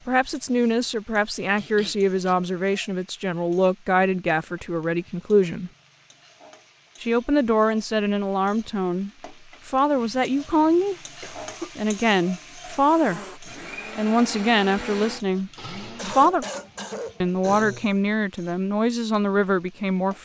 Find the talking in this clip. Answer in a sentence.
The talking can be heard from 0.1 to 5.7 s, from 7.0 to 10.9 s, from 11.8 to 16.4 s and from 17.2 to 20.1 s.